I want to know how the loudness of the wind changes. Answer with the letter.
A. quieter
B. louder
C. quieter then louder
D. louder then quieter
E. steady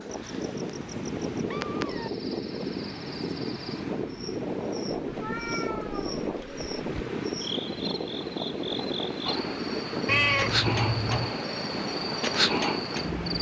E.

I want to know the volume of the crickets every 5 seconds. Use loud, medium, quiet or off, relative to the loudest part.
quiet, medium, loud.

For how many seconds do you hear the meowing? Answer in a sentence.
The meowing can be heard for 5 seconds in total.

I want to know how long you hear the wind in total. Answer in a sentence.
You can hear the wind for 13 seconds altogether.